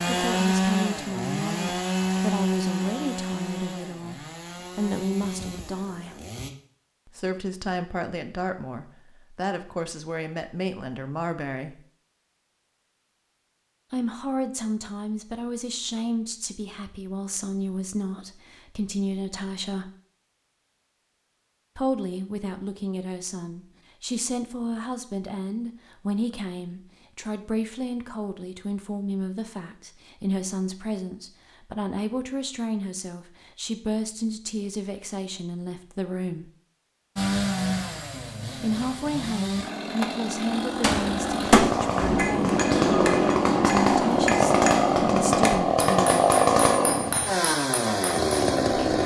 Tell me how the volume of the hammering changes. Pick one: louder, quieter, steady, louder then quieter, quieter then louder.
quieter.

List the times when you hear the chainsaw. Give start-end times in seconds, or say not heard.
0.0-6.5, 37.1-49.0.